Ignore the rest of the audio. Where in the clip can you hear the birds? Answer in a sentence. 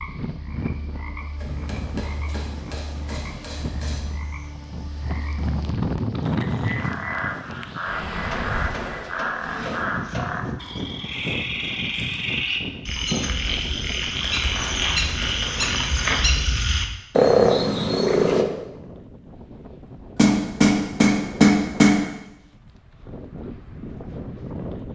The birds can't be heard in this clip.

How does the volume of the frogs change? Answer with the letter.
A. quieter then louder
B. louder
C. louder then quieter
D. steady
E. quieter
B.